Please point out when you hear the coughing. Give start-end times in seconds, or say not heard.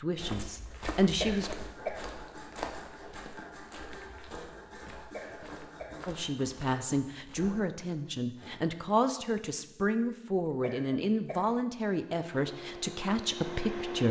1.2-2.2, 5.1-6.2, 10.6-11.7.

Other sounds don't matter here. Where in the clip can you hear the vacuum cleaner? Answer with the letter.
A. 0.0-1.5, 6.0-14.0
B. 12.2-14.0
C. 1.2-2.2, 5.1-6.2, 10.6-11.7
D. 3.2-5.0
B.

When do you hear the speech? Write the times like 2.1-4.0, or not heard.
0.0-1.5, 6.0-14.0.